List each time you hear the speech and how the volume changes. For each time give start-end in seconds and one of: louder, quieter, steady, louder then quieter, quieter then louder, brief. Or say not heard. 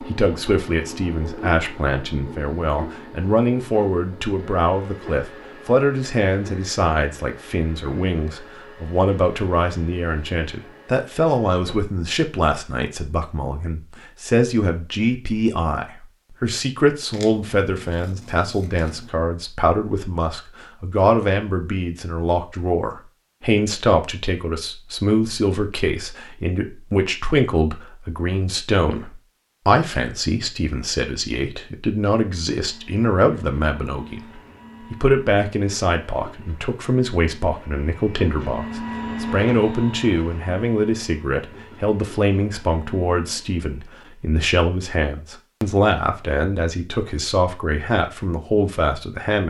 0.0-49.4 steady.